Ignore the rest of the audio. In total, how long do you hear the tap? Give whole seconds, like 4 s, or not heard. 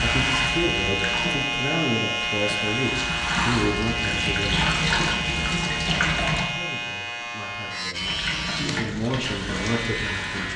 9 s.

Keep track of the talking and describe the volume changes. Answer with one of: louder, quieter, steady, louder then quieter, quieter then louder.
quieter then louder.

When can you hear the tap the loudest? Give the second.
5 s.